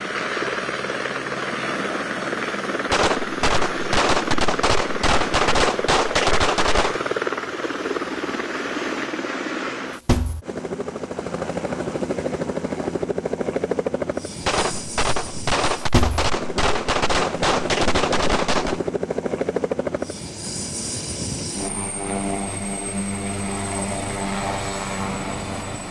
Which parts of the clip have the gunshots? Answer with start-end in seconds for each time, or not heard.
2.9-7.0, 14.4-18.8.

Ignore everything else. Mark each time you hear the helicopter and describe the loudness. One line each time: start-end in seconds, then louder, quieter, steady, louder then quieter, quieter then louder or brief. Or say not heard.
0.0-25.8 steady.